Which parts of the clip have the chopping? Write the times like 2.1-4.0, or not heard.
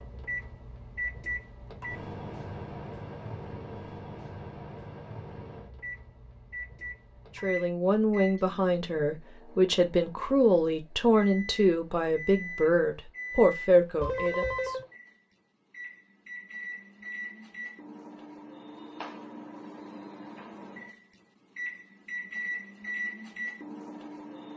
not heard.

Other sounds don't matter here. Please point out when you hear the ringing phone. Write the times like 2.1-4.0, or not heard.
14.0-14.8.